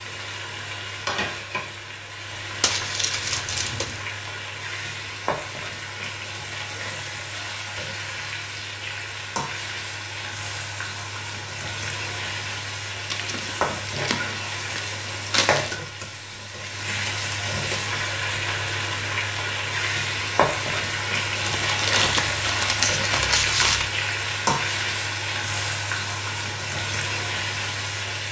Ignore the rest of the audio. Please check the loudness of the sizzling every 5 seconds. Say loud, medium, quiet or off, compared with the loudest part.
medium, medium, medium, loud, loud, loud.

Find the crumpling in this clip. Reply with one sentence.
You can hear the crumpling from 2.6 to 4.0 s, from 13.1 to 15.8 s and from 21.4 to 23.9 s.